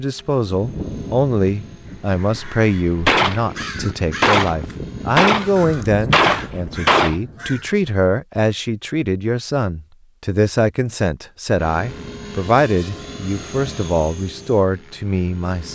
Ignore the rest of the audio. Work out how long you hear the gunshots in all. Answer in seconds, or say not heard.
4 s.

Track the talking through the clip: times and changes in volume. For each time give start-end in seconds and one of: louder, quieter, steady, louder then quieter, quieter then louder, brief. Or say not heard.
0.0-15.6 steady.